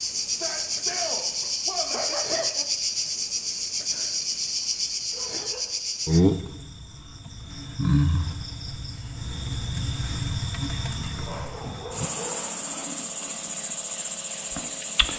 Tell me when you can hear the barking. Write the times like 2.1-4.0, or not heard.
1.4-2.6, 5.1-5.8, 10.9-12.6.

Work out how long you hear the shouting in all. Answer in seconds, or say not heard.
2 s.